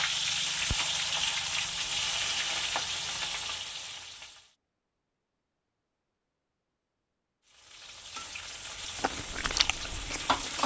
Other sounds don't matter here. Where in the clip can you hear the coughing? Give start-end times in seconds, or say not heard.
not heard.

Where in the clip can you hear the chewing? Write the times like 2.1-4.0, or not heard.
8.8-10.6.